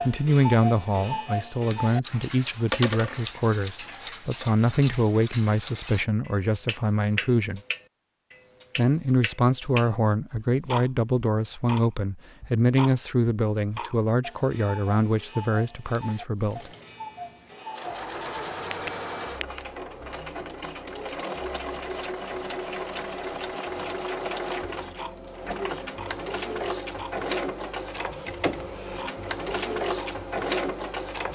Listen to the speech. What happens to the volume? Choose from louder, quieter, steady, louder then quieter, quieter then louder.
steady.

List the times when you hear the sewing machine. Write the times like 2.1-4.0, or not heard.
16.4-31.3.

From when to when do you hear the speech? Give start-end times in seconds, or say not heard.
0.0-7.6, 8.8-16.7.